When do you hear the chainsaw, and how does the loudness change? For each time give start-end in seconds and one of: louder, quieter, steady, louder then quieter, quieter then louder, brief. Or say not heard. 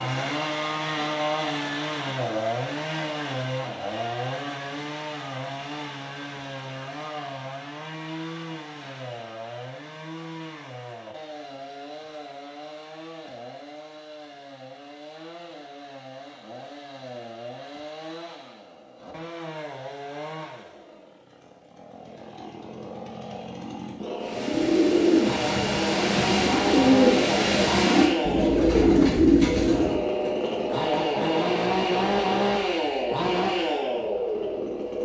0.0-35.0 quieter then louder.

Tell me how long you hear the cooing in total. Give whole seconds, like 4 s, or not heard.
6 s.